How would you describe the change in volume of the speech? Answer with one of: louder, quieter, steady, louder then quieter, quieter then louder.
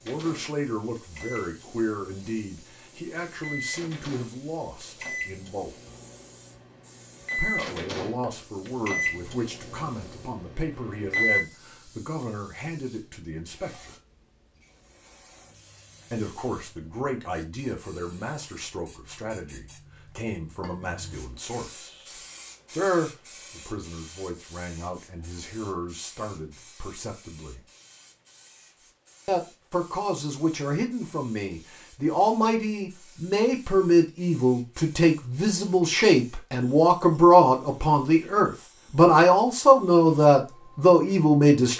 louder.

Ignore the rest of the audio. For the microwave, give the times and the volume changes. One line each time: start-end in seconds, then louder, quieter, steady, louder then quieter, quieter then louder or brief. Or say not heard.
0.0-11.4 louder.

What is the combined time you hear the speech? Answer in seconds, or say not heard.
36 s.